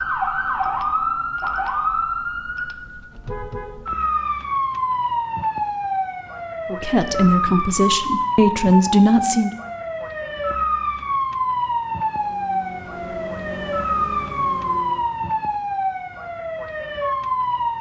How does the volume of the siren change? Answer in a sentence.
The loudness of the siren stays about the same.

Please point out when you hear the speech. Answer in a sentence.
You can hear the speech from 6.7 to 9.5 s.